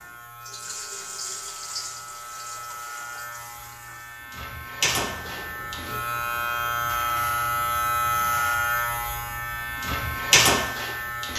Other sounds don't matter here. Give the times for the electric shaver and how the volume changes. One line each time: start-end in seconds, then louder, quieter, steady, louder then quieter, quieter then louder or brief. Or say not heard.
0.0-11.3 louder.